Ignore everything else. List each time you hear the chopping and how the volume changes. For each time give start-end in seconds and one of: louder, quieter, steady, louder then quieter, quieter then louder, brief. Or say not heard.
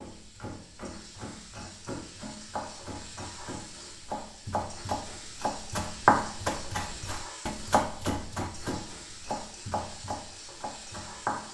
0.0-11.4 louder then quieter.